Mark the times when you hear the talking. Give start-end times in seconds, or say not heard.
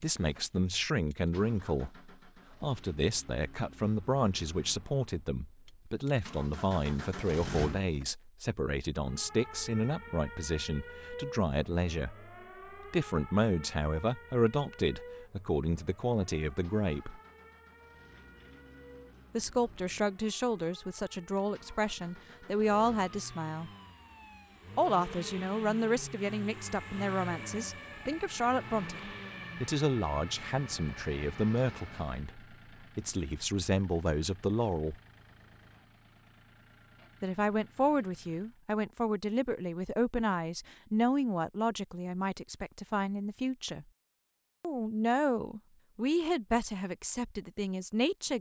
0.0-12.2, 12.9-17.2, 19.4-23.7, 24.8-35.0, 37.2-43.9, 44.6-48.3.